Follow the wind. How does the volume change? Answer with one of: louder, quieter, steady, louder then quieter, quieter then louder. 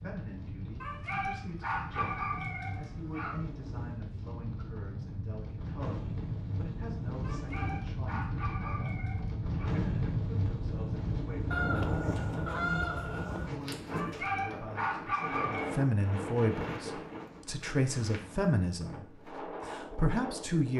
louder then quieter.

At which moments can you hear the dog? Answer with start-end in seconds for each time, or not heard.
0.8-3.4, 7.2-9.8, 13.9-15.7.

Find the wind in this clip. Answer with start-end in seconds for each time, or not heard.
0.0-20.7.